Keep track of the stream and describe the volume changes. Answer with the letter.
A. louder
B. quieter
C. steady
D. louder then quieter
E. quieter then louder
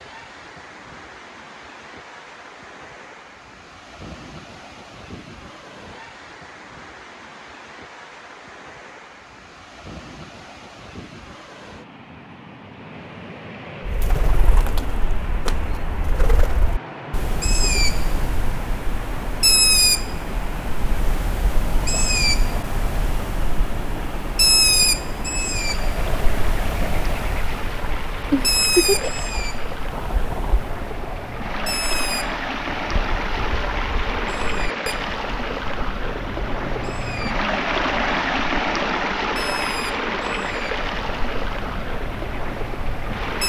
A.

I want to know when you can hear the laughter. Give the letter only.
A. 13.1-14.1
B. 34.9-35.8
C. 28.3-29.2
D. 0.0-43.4
C.